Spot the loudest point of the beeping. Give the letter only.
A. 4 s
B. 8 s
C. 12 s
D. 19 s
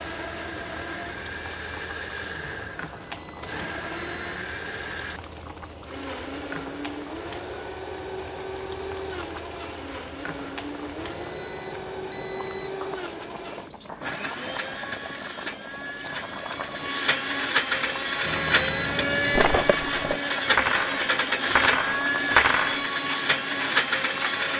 D.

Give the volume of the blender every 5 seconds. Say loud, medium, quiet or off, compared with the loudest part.
medium, medium, medium, loud, loud.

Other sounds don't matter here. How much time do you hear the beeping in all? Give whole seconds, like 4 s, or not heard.
4 s.